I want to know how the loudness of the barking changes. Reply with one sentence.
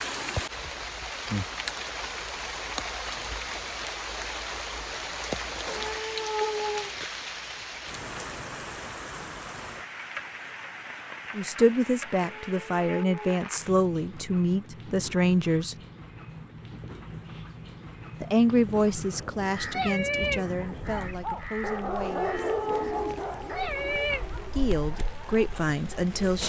The volume of the barking goes down.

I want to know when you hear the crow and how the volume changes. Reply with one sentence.
You can hear the crow from 18.9 to 24.2 s, getting quieter then louder.